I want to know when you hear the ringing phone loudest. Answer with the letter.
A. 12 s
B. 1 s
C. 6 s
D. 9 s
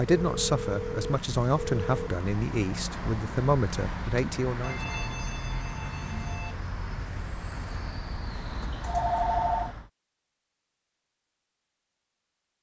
D.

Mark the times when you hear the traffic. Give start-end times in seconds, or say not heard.
0.0-9.9.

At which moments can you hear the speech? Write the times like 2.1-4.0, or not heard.
0.0-4.9.